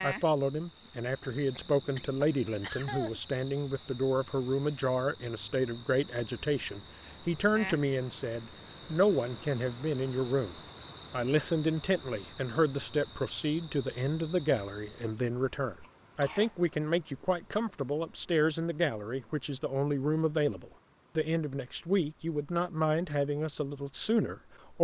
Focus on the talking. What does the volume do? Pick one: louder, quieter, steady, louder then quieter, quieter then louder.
steady.